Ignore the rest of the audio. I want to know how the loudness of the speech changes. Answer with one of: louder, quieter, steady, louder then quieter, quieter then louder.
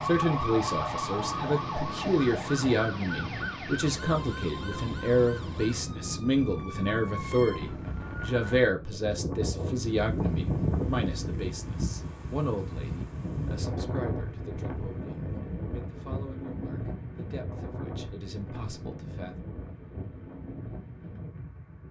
quieter.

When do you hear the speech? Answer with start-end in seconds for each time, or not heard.
0.0-19.4.